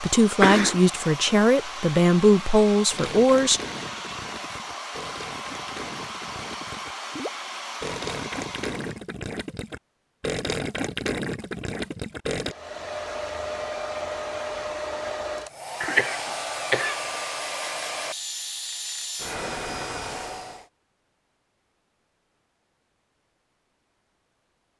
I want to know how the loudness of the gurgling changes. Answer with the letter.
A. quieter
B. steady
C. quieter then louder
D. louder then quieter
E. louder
E.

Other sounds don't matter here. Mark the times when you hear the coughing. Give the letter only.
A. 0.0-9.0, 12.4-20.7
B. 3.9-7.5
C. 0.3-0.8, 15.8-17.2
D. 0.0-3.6
C.